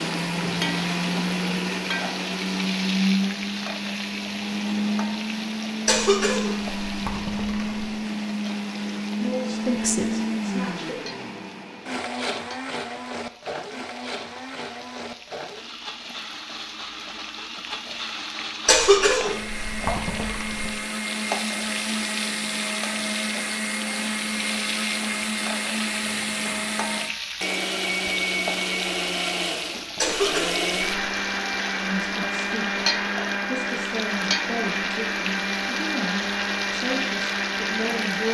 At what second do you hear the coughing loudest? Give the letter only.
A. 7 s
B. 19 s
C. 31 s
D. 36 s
B.